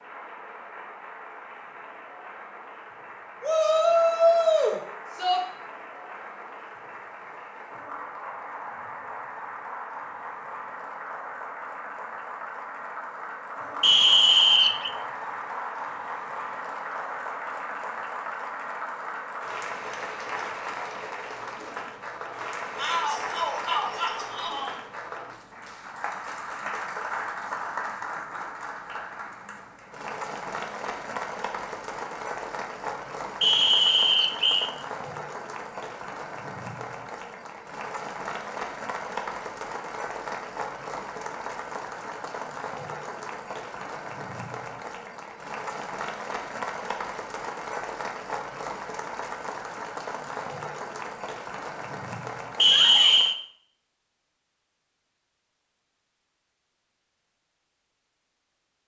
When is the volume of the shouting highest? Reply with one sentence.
The volume of the shouting peaks at 4 seconds.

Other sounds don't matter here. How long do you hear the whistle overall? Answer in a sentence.
You can hear the whistle for 3 seconds altogether.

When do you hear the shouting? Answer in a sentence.
The shouting can be heard from 3.4 to 5.4 s, from 22.8 to 24.8 s and from 52.6 to 53.2 s.